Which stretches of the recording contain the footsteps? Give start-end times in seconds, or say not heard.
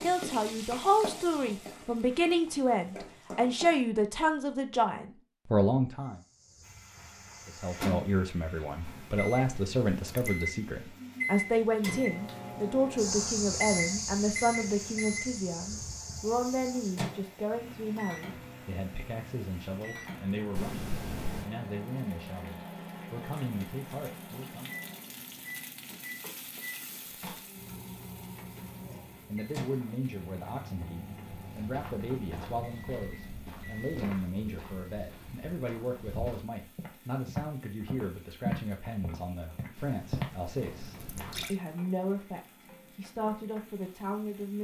31.2-41.5.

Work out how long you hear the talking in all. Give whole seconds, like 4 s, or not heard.
39 s.